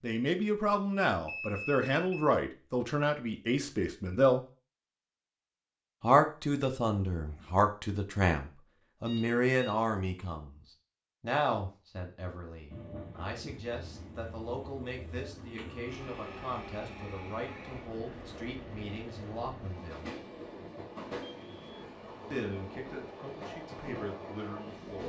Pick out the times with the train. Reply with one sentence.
The train can be heard from 12.7 to 25.0 s.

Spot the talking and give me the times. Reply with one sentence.
You can hear the talking from 0.0 to 4.4 s, from 6.0 to 10.6 s, from 11.2 to 20.1 s and from 22.3 to 25.0 s.